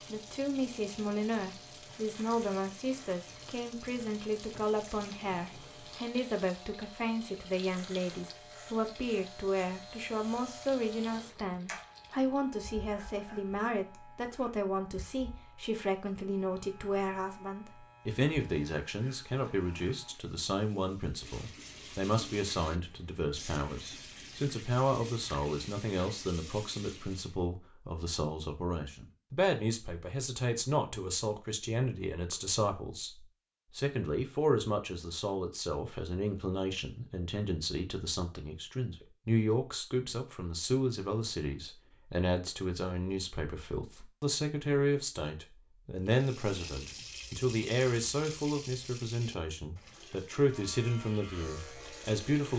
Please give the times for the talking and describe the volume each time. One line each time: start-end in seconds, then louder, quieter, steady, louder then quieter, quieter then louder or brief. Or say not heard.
0.1-52.5 steady.